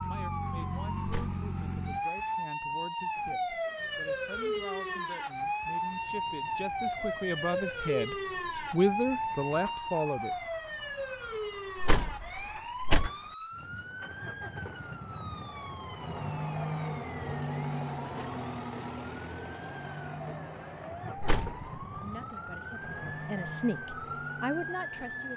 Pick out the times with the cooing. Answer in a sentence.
The cooing can't be heard in this clip.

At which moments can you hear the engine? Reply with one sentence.
The engine can be heard from 0.0 to 25.3 s.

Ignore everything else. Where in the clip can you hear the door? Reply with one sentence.
You can hear the door from 1.0 to 1.5 s, from 11.8 to 13.1 s and from 21.2 to 21.6 s.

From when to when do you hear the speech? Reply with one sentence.
The speech can be heard from 0.1 to 10.5 s and from 22.0 to 25.3 s.